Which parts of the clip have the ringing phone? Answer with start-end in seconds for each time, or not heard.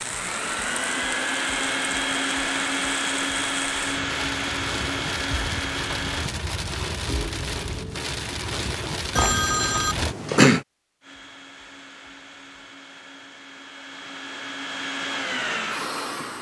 9.2-10.6.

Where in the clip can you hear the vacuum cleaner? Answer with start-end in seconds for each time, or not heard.
0.0-6.3, 11.0-16.3.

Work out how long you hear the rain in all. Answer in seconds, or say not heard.
10 s.